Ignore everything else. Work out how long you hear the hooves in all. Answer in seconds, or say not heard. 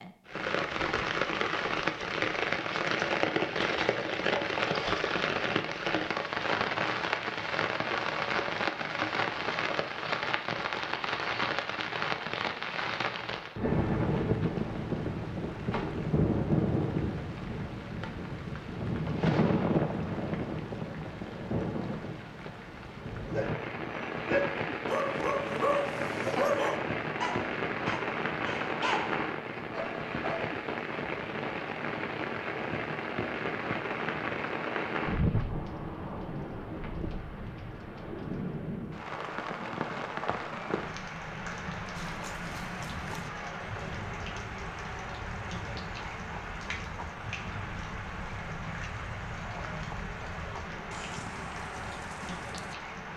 11 s.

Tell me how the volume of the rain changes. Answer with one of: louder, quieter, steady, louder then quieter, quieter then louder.
quieter.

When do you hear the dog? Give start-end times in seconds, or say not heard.
23.3-30.6.